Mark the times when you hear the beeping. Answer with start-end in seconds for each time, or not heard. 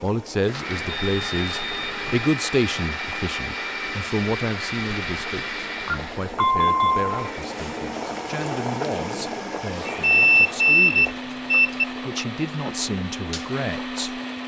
0.8-2.2, 5.8-7.1, 10.0-11.8.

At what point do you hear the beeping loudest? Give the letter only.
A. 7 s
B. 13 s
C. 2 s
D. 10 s
D.